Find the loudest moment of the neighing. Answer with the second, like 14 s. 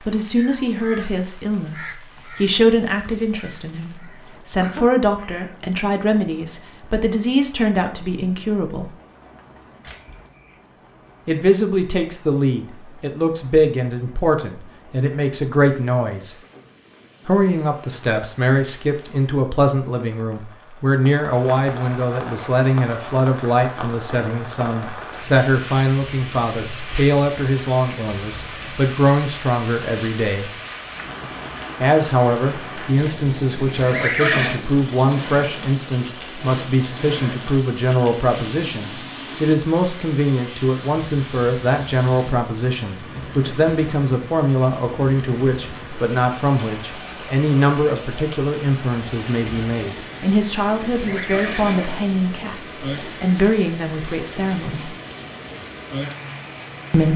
34 s.